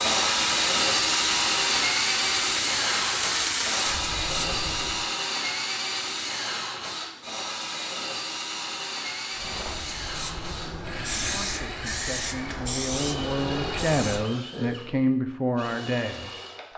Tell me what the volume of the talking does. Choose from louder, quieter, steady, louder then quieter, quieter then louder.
louder.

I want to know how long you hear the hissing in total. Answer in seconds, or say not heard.
10 s.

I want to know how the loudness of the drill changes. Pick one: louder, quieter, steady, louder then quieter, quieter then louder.
quieter.